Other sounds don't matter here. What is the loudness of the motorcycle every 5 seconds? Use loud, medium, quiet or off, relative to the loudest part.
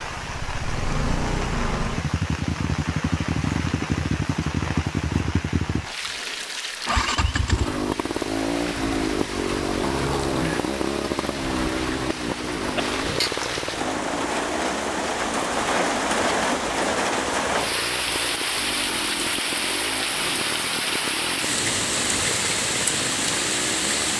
loud, loud, loud, medium, medium.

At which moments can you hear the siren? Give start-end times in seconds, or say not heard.
not heard.